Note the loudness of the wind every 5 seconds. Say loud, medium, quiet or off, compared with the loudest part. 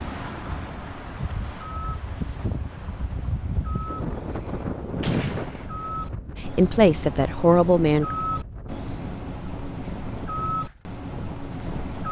loud, loud, medium.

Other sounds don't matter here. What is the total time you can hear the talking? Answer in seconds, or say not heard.
2 s.